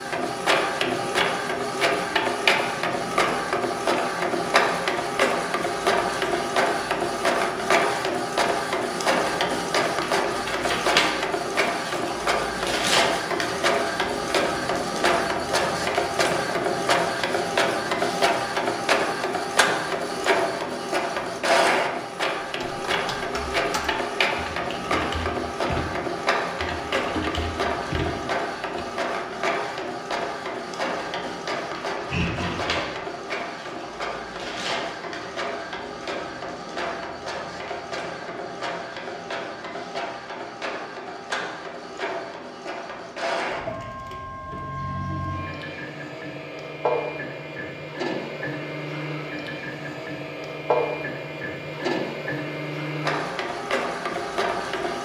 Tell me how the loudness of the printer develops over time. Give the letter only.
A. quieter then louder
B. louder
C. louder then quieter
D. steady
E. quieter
E.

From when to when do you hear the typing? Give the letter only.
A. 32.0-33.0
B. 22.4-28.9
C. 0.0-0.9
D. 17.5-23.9
B.